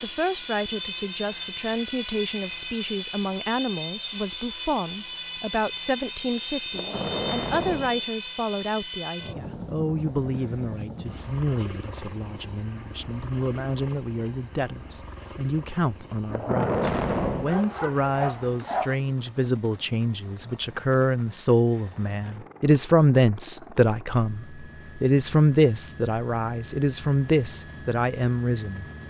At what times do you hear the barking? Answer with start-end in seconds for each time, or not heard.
17.4-18.9.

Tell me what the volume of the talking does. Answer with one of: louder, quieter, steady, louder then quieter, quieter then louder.
louder.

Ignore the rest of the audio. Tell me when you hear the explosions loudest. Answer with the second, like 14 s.
17 s.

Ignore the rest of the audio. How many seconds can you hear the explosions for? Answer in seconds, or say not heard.
3 s.